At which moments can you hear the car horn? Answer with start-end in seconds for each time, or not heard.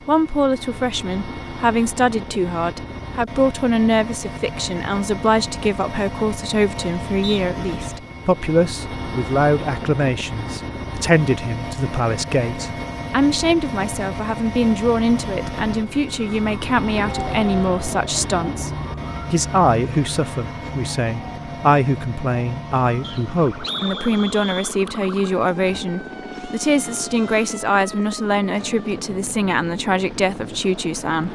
not heard.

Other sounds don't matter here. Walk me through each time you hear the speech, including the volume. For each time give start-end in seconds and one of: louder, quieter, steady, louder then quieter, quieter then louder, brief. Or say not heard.
0.1-31.3 steady.